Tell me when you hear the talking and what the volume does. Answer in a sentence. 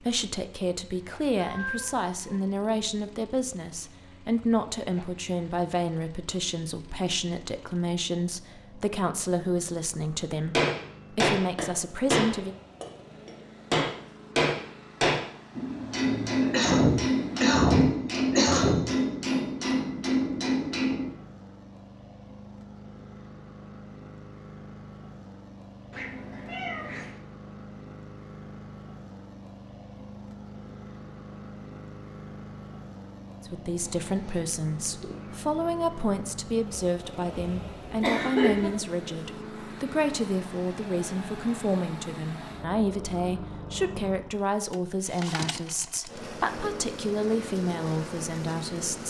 The talking can be heard from 0.0 to 12.6 s, at a steady volume; and from 33.5 to 49.0 s, at a steady volume.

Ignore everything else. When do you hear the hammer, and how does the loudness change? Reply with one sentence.
The hammer can be heard from 10.5 to 21.1 s, at a steady volume.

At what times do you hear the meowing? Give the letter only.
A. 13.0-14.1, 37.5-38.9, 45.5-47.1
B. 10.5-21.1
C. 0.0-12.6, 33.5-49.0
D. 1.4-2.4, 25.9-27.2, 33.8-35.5
D.